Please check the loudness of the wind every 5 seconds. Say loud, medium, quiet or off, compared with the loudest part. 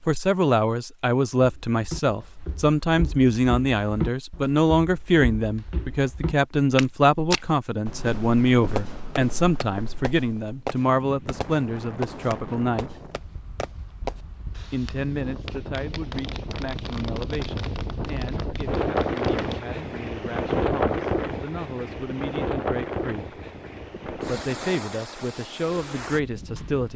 off, off, quiet, loud, loud, medium.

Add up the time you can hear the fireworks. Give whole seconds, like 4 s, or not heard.
11 s.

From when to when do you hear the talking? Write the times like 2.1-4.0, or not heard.
0.0-13.0, 14.7-23.4, 24.1-26.9.